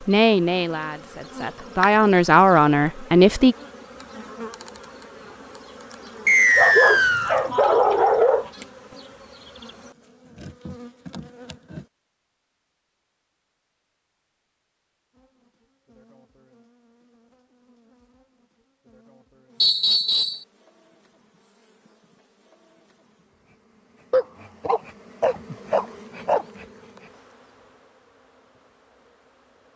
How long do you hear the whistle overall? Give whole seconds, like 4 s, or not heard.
2 s.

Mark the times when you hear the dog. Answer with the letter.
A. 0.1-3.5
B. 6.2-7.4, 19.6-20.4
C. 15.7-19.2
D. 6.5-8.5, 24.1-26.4
D.